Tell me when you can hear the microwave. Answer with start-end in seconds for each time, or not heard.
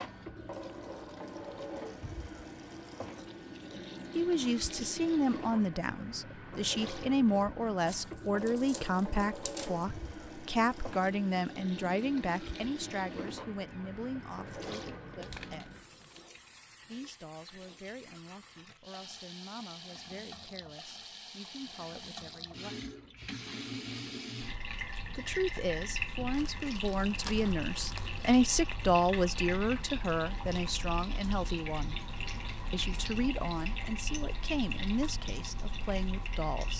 not heard.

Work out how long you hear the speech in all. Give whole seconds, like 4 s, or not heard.
28 s.